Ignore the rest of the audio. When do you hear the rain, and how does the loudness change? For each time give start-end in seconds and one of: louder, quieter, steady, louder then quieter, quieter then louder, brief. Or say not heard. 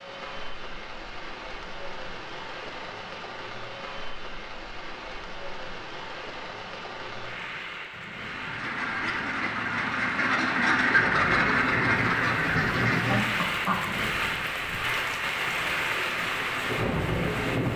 0.0-17.7 louder.